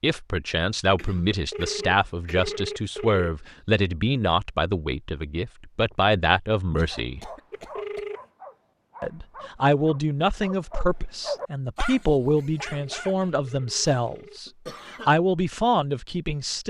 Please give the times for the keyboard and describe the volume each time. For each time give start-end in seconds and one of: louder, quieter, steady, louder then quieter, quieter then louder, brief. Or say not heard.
not heard.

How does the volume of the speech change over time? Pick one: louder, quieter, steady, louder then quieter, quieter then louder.
steady.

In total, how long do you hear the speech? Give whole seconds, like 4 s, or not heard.
15 s.